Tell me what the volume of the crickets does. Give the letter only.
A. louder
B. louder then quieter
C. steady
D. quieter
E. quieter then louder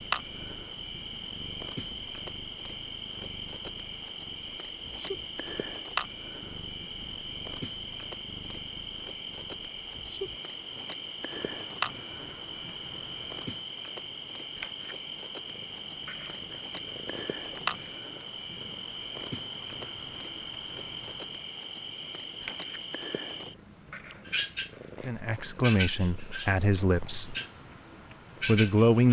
C.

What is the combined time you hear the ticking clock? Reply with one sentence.
The ticking clock can't be heard in this clip.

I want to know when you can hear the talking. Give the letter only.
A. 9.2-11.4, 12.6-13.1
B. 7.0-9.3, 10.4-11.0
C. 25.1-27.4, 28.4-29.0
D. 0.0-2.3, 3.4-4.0
C.